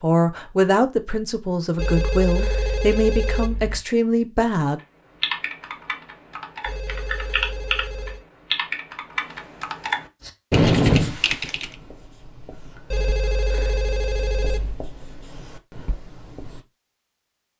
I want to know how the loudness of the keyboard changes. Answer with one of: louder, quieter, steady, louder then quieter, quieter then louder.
louder.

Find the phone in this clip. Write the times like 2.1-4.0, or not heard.
1.8-3.8, 6.7-8.2, 12.9-14.8.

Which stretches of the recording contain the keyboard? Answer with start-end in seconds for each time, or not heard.
5.2-11.7.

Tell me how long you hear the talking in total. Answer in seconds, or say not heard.
5 s.